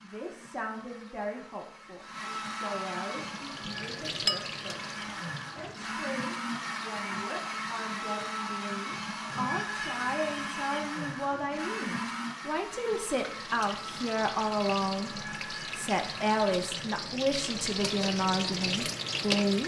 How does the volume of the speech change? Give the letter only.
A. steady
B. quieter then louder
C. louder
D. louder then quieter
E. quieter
C.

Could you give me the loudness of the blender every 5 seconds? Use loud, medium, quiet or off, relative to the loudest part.
medium, loud, loud, medium.